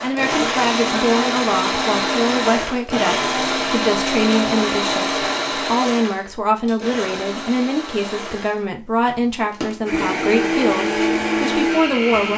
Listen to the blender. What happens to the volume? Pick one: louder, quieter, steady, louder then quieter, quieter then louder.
quieter then louder.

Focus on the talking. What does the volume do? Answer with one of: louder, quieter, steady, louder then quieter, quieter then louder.
steady.